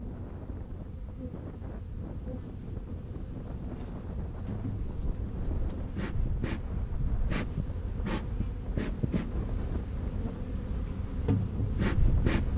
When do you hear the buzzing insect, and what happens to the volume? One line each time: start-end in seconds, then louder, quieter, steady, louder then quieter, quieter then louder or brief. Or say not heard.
0.0-12.5 louder.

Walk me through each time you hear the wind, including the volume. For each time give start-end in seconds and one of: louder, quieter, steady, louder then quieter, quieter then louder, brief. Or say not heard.
0.0-12.5 steady.